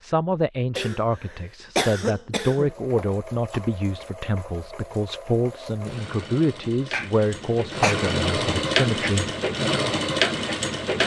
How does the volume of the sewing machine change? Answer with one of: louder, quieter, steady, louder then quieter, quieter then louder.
louder.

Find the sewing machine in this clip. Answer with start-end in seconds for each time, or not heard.
2.5-11.0.